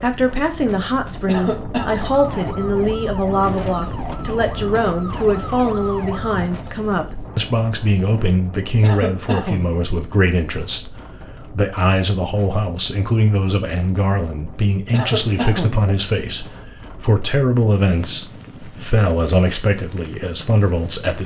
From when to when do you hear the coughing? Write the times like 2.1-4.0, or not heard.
1.2-1.9, 8.8-9.8, 14.9-15.9.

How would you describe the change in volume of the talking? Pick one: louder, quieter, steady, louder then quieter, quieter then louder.
steady.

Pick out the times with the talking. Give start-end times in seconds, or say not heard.
0.0-21.2.